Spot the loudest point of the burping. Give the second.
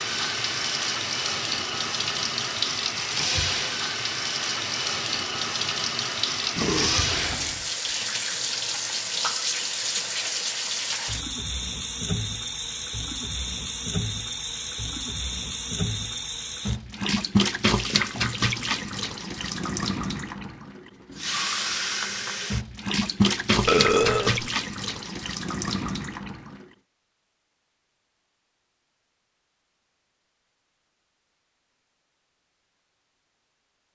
24 s.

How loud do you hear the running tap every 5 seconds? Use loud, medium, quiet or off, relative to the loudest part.
loud, loud, loud, loud, loud, medium, off.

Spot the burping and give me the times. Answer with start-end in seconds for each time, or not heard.
6.5-7.7, 23.6-24.5.